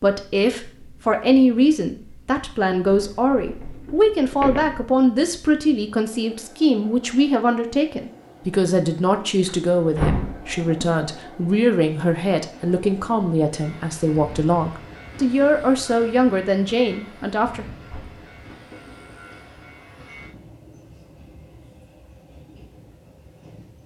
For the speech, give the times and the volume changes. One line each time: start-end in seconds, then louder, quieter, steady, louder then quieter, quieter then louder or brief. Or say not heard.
0.0-17.6 steady.